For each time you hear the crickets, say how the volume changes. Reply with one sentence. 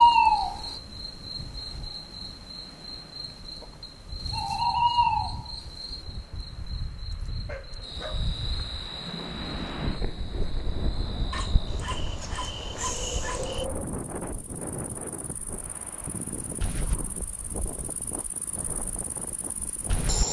The crickets can be heard from 0.0 to 20.2 s, getting louder then quieter.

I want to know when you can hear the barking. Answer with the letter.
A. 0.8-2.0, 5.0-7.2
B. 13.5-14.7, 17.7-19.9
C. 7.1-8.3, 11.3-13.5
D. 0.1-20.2
C.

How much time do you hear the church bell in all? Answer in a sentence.
The church bell can't be heard in this clip.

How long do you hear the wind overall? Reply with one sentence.
The wind can be heard for 20 seconds in total.